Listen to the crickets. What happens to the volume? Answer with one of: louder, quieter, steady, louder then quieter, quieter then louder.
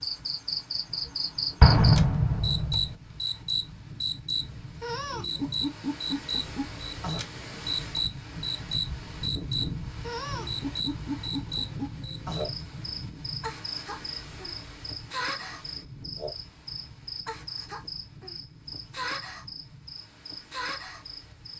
quieter.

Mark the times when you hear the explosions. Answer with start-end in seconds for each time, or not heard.
1.6-3.0.